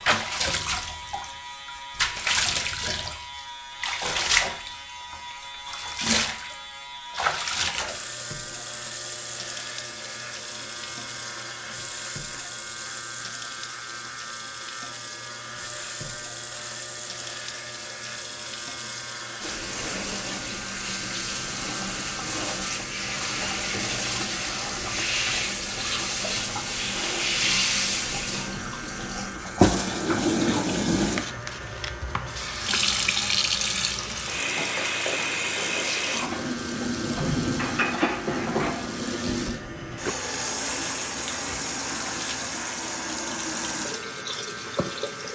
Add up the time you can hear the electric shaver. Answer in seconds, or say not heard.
45 s.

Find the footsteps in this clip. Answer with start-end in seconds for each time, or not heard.
not heard.